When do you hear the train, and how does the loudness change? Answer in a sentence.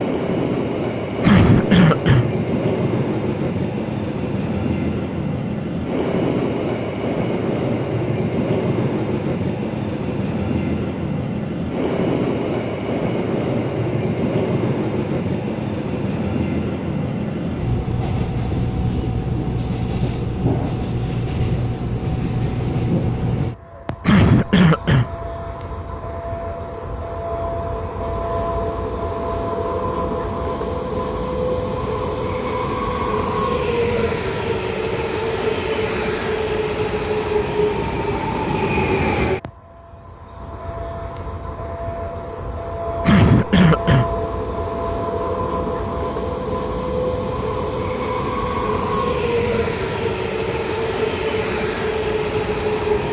You can hear the train from 0.0 to 53.0 s, at a steady volume.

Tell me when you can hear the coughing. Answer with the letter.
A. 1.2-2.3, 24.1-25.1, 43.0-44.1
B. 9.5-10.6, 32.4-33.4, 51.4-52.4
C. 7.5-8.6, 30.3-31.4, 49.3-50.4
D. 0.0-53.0
A.